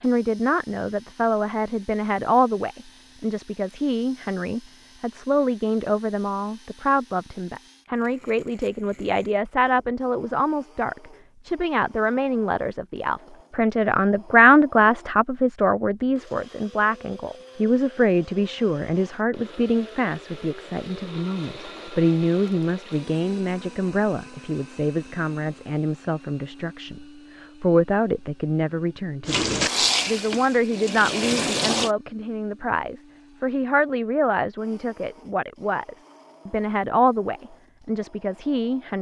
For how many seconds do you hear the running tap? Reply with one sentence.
You can hear the running tap for 3 seconds altogether.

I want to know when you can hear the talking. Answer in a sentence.
You can hear the talking from 0.0 to 38.9 s.